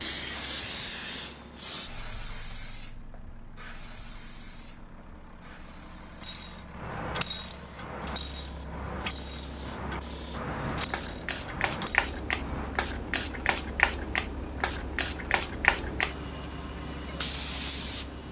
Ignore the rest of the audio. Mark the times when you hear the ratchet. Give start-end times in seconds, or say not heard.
6.2-12.8.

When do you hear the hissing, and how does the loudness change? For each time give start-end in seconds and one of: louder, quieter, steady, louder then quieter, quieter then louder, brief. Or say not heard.
0.0-18.2 quieter then louder.